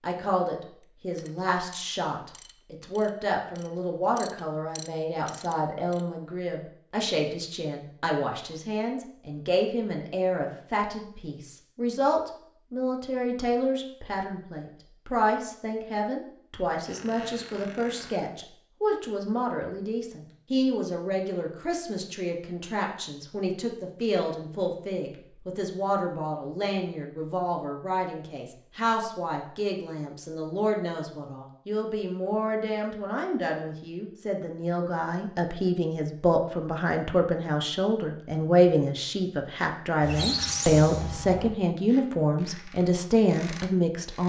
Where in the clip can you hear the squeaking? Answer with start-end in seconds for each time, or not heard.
16.9-18.3, 40.0-41.5.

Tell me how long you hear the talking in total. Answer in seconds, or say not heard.
44 s.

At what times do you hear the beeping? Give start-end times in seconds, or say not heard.
not heard.